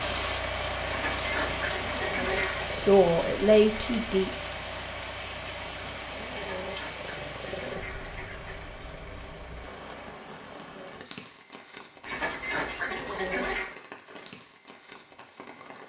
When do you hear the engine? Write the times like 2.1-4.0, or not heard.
0.0-10.2.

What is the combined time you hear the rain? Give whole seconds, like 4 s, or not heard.
16 s.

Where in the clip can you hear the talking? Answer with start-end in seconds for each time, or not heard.
2.7-4.3.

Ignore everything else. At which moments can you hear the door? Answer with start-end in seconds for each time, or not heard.
not heard.